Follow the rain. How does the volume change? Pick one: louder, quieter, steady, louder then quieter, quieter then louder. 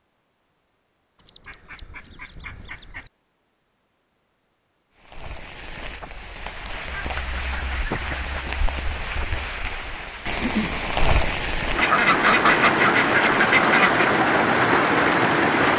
louder.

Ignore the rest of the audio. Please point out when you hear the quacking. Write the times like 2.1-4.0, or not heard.
1.1-3.1, 6.8-8.4, 11.8-14.2.